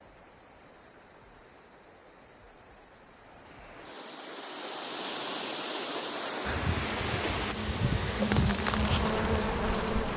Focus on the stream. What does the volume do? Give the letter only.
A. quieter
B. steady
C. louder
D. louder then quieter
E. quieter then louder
C.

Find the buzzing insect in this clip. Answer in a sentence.
The buzzing insect can be heard from 6.4 to 10.1 s.